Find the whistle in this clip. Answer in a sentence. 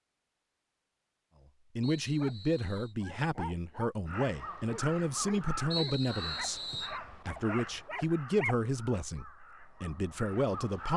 You can hear the whistle from 1.8 to 3.0 s and from 5.7 to 7.0 s.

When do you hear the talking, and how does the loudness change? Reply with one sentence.
The talking can be heard from 1.8 to 10.9 s, at a steady volume.